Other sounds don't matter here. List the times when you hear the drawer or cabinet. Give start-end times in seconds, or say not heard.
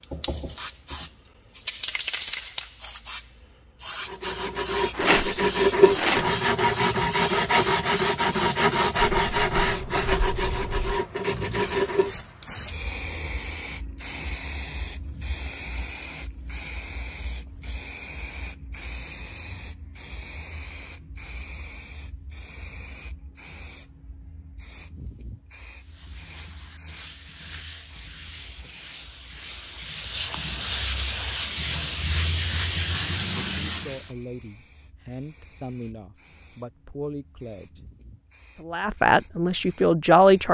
not heard.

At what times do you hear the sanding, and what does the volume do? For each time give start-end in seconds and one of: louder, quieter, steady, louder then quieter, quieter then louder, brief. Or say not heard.
4.0-12.2 quieter
25.8-34.1 louder.